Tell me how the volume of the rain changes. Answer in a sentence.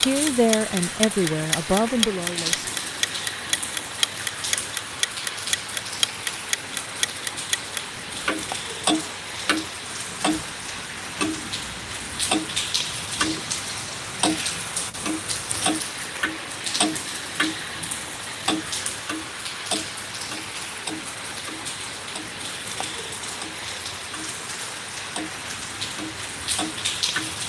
The loudness of the rain stays about the same.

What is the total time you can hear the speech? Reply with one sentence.
The speech can be heard for 3 seconds in total.